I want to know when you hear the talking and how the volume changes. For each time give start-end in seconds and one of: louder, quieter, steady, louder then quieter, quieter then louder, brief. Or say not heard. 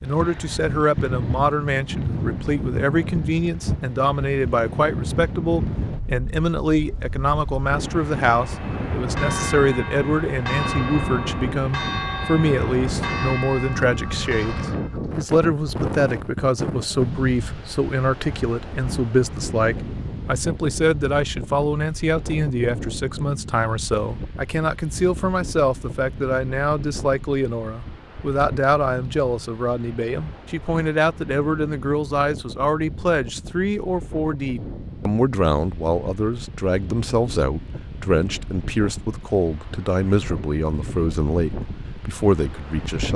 0.0-43.1 steady.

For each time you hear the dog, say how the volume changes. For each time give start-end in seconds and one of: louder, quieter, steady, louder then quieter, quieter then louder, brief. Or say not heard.
not heard.